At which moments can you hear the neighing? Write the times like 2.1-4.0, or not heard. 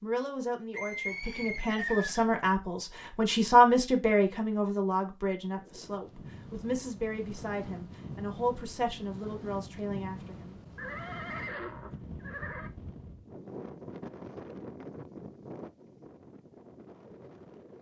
0.7-2.5, 10.8-12.7.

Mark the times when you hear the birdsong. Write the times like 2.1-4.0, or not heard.
not heard.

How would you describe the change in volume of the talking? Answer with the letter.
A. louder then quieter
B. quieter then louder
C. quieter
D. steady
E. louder
A.